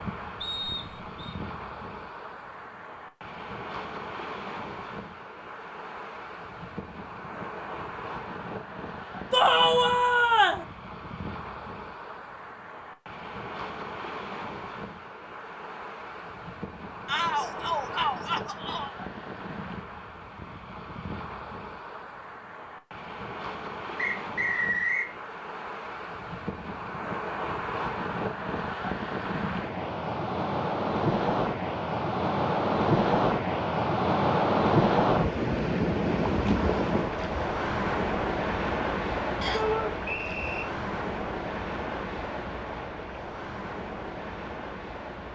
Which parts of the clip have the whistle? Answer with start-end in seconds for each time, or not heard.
0.4-1.4, 23.9-25.1, 39.4-40.6.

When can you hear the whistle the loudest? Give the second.
25 s.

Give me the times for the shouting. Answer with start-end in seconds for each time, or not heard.
9.3-10.7, 17.1-18.9, 39.5-40.0.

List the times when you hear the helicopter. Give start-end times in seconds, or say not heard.
not heard.